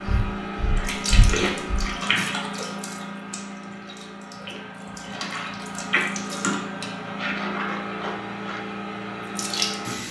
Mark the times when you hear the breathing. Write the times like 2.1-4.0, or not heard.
0.1-1.9.